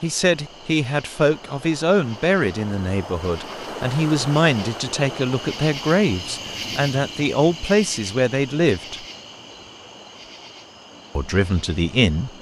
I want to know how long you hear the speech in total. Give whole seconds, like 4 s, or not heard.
10 s.